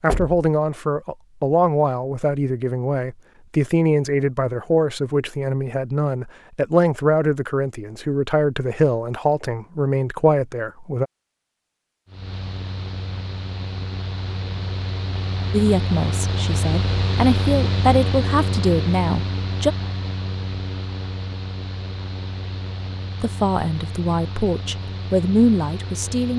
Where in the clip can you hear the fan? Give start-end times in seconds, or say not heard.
12.1-26.3.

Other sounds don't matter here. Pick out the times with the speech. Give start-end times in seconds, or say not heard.
0.0-11.1, 15.5-19.8, 23.2-26.3.